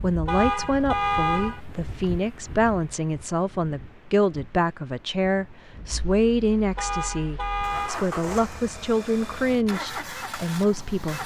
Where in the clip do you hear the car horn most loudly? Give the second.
1 s.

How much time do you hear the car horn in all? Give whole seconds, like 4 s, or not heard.
3 s.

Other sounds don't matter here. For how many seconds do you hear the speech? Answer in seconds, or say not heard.
11 s.